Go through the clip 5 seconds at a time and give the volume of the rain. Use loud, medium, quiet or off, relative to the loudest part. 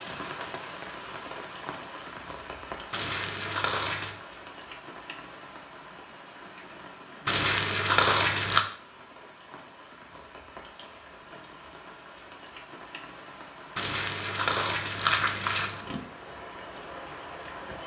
loud, medium, medium, loud.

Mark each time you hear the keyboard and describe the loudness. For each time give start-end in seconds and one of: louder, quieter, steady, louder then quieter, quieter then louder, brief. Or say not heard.
not heard.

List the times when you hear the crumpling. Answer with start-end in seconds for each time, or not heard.
2.9-4.2, 7.2-8.7, 13.8-15.8.